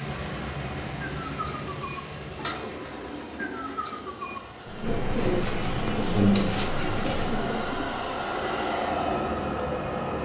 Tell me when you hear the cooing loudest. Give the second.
6 s.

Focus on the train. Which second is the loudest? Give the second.
9 s.